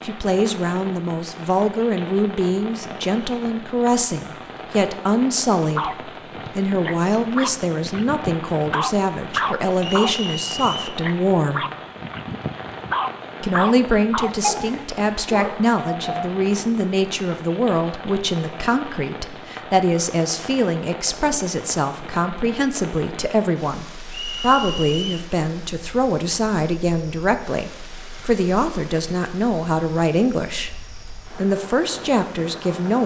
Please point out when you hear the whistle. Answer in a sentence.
You can hear the whistle from 9.8 to 11.0 s and from 24.1 to 25.2 s.